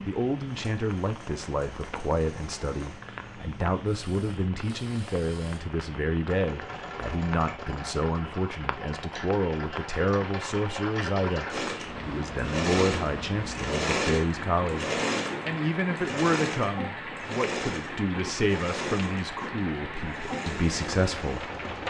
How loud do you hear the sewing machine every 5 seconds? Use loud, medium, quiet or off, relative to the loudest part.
quiet, medium, loud, loud, medium.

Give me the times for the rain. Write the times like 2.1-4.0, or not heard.
0.0-21.8.